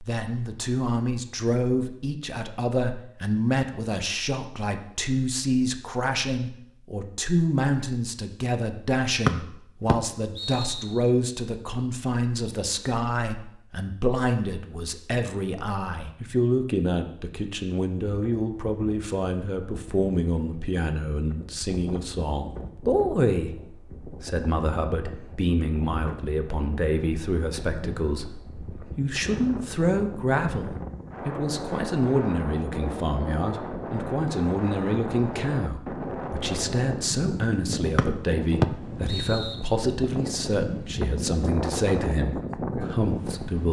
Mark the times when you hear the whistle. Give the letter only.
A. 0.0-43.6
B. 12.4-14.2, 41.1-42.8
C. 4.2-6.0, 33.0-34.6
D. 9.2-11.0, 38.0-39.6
D.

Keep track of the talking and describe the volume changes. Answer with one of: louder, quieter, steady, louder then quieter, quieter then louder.
steady.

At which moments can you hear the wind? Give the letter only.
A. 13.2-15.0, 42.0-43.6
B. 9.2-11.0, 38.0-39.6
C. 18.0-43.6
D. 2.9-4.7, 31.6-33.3
C.